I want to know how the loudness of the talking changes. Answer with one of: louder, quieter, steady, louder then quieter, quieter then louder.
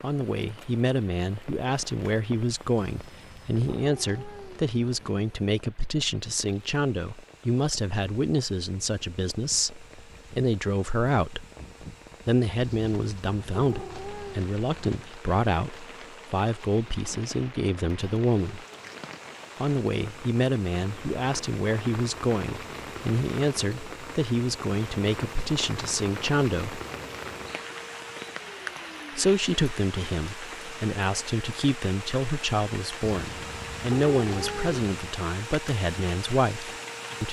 steady.